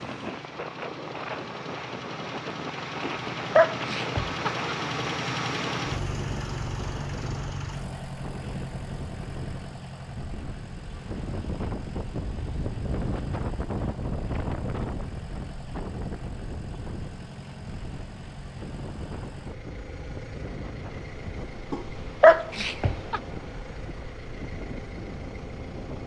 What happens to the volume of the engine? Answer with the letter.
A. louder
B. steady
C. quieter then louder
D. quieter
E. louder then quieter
D.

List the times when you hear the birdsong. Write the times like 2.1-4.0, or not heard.
not heard.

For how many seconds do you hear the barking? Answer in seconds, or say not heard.
3 s.